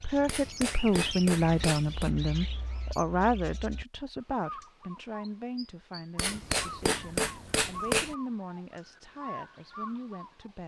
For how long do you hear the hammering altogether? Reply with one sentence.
You can hear the hammering for 4 seconds altogether.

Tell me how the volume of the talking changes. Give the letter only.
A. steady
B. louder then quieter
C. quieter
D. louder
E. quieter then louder
C.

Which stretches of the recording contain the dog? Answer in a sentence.
The dog can't be heard in this clip.